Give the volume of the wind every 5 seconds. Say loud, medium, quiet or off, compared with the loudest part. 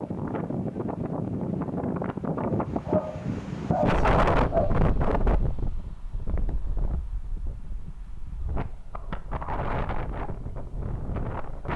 loud, medium, medium.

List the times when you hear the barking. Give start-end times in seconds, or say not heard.
2.9-4.7.